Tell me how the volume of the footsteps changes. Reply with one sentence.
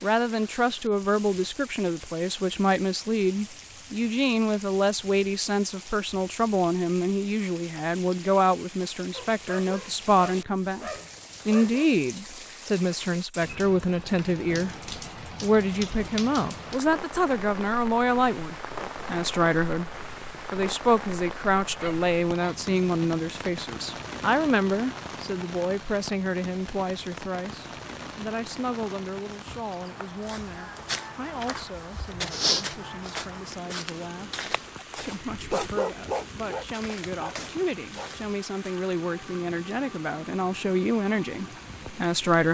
The volume of the footsteps goes up, then down.